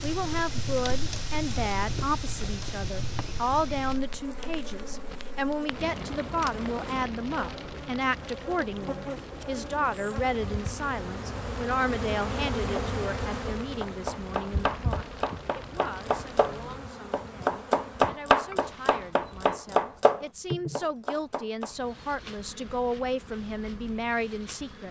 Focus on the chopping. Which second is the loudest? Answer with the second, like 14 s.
18 s.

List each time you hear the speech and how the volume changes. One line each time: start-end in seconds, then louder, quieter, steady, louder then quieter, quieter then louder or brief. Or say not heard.
0.0-24.8 quieter then louder.